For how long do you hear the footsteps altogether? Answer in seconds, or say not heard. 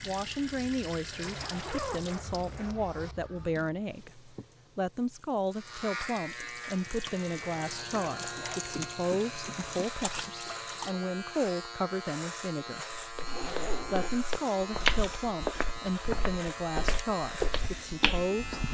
6 s.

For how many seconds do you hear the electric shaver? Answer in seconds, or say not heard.
13 s.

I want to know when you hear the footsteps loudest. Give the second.
15 s.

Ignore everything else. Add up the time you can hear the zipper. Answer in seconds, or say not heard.
4 s.